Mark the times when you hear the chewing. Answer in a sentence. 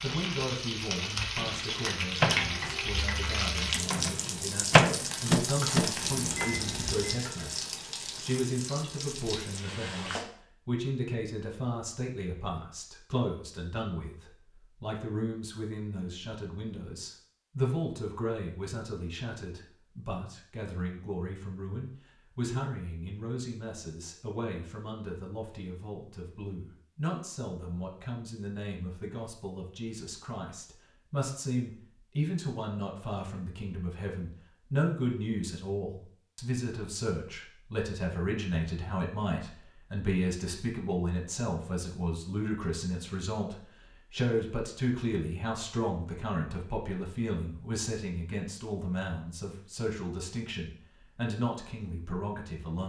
You can't hear the chewing here.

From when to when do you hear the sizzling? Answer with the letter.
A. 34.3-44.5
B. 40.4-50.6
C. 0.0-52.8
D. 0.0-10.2
D.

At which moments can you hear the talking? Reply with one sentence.
You can hear the talking from 0.0 to 52.8 s.